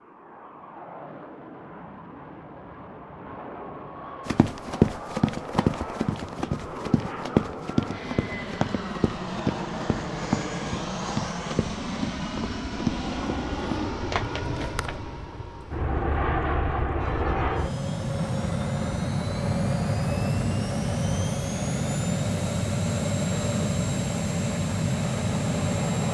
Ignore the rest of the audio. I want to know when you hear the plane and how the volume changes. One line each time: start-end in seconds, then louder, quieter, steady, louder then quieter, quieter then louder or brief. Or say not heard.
0.0-26.0 louder.